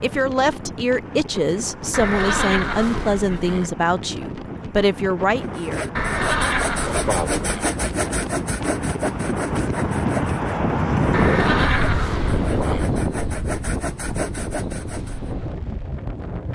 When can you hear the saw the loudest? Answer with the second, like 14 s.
7 s.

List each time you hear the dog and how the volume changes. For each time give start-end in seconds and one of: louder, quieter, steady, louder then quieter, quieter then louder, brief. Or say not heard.
not heard.